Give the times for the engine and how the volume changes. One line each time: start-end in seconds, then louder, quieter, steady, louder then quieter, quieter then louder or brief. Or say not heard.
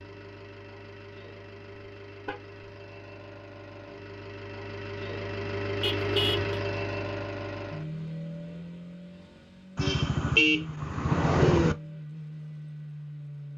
0.0-13.5 louder then quieter.